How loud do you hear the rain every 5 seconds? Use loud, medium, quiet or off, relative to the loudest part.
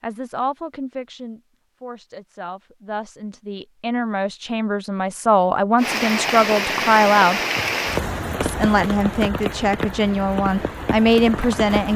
off, loud, medium.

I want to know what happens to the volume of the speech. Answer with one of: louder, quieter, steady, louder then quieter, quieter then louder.
louder.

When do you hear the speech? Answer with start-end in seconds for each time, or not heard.
0.0-7.4, 8.4-11.9.